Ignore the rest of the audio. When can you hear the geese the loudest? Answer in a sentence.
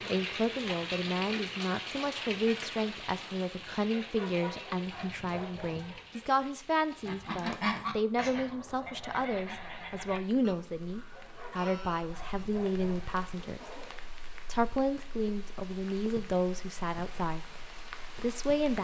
The loudest moment of the geese is at 8 seconds.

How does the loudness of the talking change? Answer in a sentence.
The loudness of the talking stays about the same.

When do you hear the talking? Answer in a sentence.
The talking can be heard from 0.1 to 13.6 s and from 14.4 to 18.7 s.